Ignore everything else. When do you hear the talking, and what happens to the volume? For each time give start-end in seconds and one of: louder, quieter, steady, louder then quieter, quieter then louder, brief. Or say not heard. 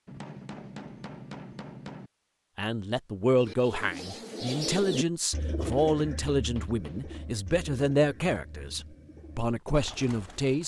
2.5-10.6 steady.